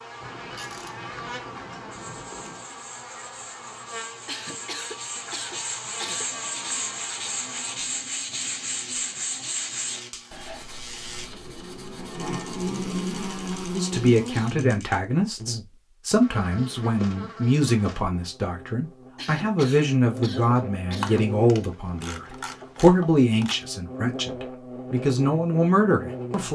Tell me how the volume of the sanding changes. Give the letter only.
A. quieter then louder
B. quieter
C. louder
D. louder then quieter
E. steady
D.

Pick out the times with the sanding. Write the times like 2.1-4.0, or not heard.
1.9-13.8.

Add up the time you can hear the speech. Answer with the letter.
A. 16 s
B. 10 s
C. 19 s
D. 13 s
D.